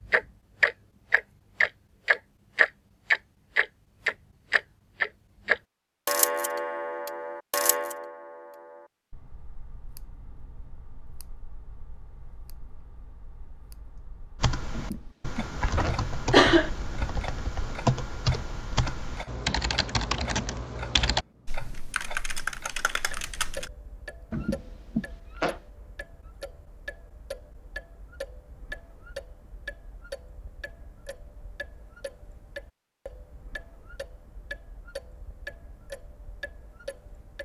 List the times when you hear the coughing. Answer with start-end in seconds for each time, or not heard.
14.8-16.7, 24.3-25.6.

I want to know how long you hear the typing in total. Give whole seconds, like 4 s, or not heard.
9 s.